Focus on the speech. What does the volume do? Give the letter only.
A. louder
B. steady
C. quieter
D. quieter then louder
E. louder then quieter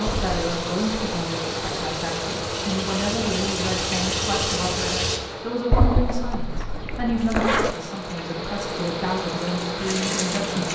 B.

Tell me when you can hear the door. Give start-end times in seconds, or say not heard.
not heard.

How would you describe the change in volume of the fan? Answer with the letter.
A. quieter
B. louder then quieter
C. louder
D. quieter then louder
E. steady
D.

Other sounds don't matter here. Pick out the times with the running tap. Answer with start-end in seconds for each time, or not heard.
0.0-5.2, 7.2-10.6.